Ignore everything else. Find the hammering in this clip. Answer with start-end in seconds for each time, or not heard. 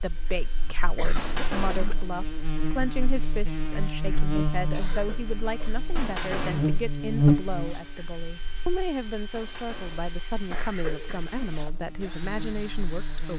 1.1-2.0, 6.0-6.8, 9.3-10.1.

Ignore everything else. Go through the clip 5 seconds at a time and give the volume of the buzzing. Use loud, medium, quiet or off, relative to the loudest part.
medium, loud, quiet.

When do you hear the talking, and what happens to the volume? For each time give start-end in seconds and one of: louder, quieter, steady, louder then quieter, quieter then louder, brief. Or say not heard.
0.0-13.3 steady.